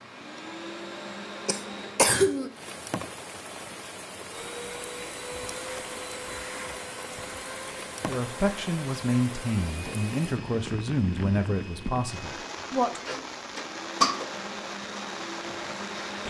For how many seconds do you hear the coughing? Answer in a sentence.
The coughing can be heard for 2 seconds in total.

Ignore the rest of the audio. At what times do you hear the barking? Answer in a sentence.
You can't hear the barking here.